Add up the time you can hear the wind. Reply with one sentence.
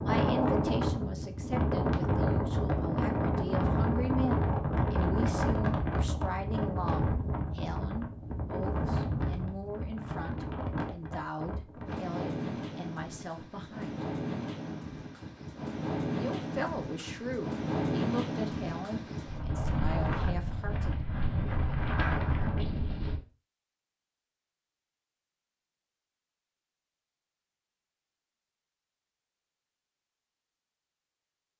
The wind can be heard for 23 seconds in total.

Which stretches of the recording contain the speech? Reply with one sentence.
The speech can be heard from 0.0 to 14.1 s and from 16.1 to 20.9 s.